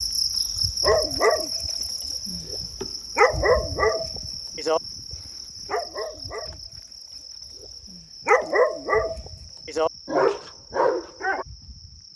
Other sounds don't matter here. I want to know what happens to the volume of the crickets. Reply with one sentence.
The volume of the crickets goes down.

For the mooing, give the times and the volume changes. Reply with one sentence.
You can't hear the mooing here.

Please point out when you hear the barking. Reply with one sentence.
You can hear the barking from 0.8 to 11.4 s.